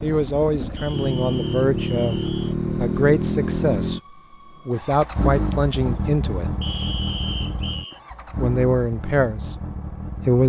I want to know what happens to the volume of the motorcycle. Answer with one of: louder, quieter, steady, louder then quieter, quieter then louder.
quieter.